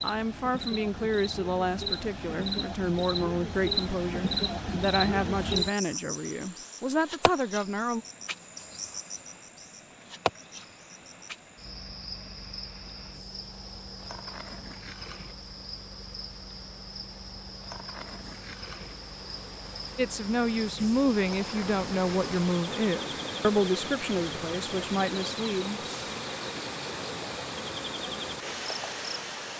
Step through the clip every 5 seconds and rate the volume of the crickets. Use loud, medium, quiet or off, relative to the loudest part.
loud, loud, medium, medium, medium, medium.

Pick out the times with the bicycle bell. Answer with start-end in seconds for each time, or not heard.
not heard.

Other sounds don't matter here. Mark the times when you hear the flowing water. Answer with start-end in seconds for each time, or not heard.
6.1-29.5.